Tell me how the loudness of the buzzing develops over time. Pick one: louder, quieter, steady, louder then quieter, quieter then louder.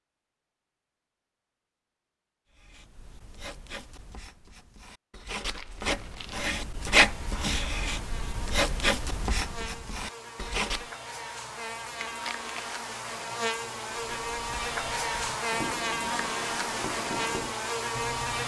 louder.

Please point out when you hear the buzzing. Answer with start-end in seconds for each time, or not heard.
7.0-18.4.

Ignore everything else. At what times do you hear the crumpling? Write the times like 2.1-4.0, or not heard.
5.3-6.5, 12.0-12.9.